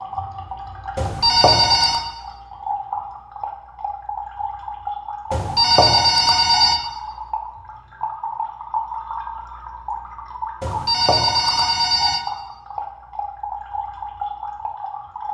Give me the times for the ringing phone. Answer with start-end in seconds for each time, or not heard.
0.9-2.0, 5.3-6.8, 10.6-12.2.